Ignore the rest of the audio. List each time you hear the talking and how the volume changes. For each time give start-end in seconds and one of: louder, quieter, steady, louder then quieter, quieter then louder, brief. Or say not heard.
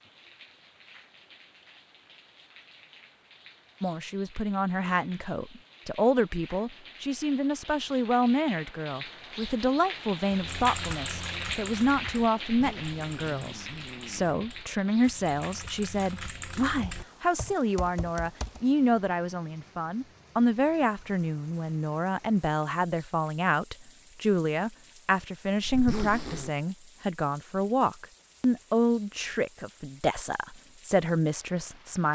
3.8-32.1 steady.